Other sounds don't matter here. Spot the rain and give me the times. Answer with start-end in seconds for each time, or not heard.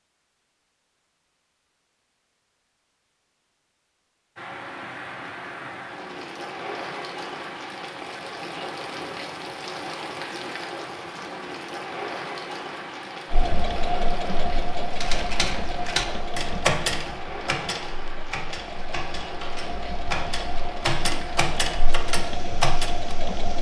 4.3-23.5.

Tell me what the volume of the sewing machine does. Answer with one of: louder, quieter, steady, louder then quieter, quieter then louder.
quieter then louder.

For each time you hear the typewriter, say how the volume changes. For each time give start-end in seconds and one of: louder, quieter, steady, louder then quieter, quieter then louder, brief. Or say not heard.
14.9-23.1 quieter then louder.